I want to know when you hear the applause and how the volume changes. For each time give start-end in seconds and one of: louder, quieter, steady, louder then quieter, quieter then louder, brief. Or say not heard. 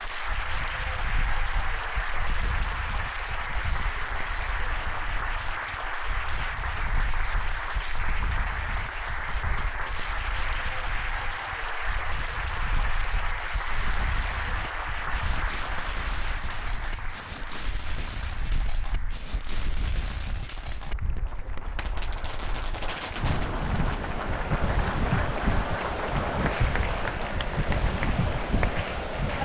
0.0-29.4 quieter then louder.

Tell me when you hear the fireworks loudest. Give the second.
23 s.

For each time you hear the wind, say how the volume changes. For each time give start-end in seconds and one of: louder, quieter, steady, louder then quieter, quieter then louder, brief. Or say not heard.
0.0-29.4 louder.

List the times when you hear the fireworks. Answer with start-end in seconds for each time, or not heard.
13.6-24.2.